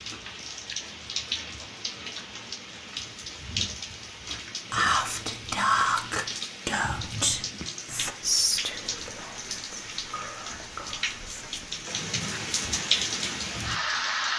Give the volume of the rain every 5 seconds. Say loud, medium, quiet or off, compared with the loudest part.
medium, medium, loud.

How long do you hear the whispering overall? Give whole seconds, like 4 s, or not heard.
7 s.